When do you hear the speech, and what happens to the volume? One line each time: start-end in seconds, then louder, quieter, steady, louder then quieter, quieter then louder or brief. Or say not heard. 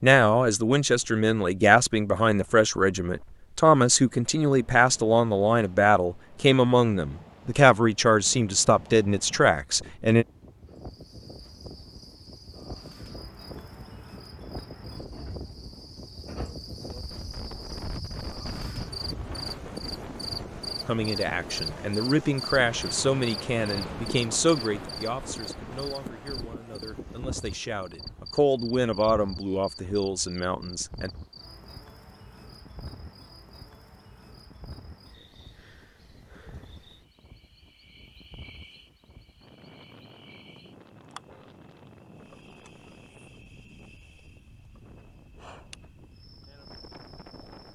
0.0-10.2 steady
20.9-31.1 quieter then louder.